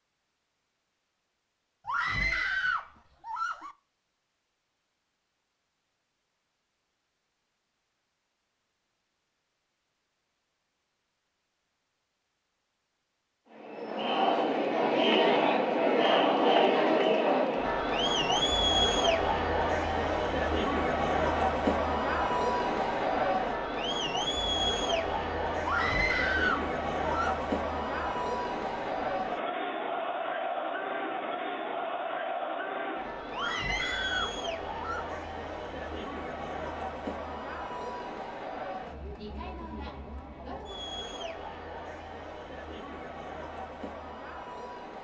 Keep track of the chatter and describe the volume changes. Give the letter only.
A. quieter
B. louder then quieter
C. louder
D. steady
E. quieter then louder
A.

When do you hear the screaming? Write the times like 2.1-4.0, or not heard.
1.9-3.8, 25.6-27.5, 33.3-35.2.